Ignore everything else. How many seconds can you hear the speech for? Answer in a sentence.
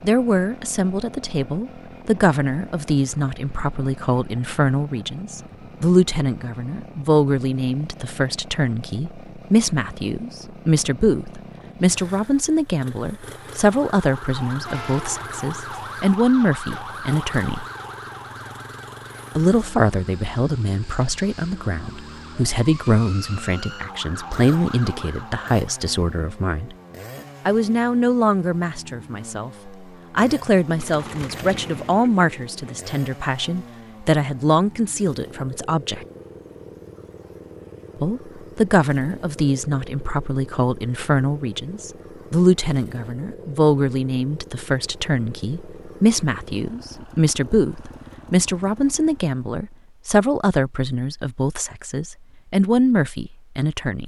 The speech can be heard for 50 seconds in total.